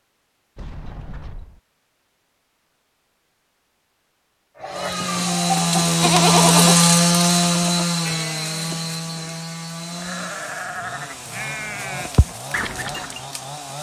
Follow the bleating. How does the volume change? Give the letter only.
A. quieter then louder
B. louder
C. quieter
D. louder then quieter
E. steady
A.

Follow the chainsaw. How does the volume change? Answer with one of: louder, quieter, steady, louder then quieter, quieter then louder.
quieter.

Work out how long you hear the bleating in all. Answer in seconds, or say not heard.
9 s.